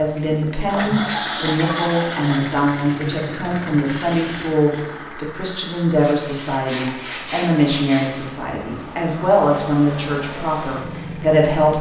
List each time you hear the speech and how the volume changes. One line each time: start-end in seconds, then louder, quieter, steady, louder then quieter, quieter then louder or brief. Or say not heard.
0.0-11.7 steady.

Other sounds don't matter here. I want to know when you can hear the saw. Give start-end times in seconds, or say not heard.
0.7-2.5, 6.0-8.3.